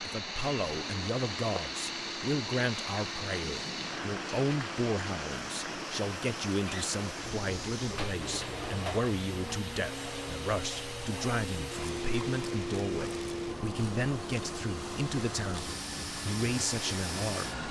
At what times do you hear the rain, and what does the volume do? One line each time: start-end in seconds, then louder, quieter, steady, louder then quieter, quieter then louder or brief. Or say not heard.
0.0-17.6 quieter.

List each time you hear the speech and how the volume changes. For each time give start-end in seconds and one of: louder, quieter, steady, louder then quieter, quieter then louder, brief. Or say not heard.
0.0-17.6 steady.